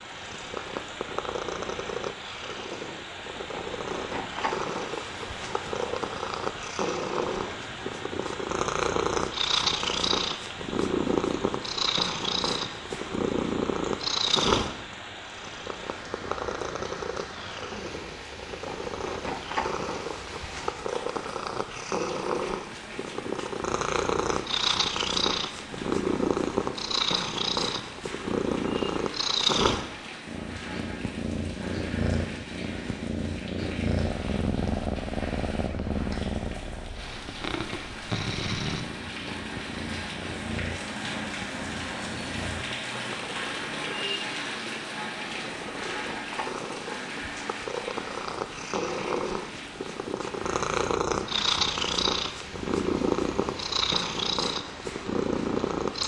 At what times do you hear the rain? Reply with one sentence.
You can hear the rain from 0.0 to 56.0 s.